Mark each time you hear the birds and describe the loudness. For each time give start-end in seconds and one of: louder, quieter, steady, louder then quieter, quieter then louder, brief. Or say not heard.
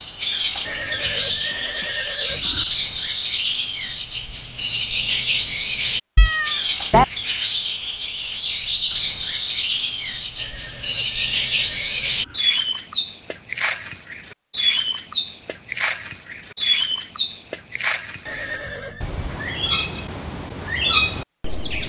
0.0-21.8 steady.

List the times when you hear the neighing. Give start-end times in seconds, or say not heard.
0.7-2.6, 10.3-12.4, 18.2-19.1.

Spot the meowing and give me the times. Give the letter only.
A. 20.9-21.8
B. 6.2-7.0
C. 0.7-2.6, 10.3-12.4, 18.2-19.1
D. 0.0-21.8
B.